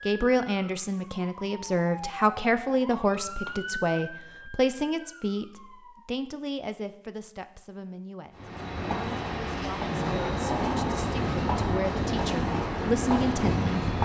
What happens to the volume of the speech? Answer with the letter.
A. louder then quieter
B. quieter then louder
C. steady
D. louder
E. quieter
B.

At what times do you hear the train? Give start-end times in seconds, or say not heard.
8.3-14.0.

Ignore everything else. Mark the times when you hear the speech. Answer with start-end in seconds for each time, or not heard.
0.1-14.0.